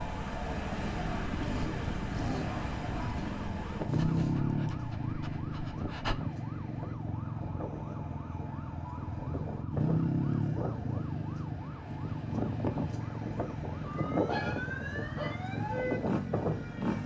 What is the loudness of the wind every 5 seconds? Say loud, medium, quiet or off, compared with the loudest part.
loud, medium, loud, loud.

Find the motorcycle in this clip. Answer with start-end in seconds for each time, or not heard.
0.2-17.0.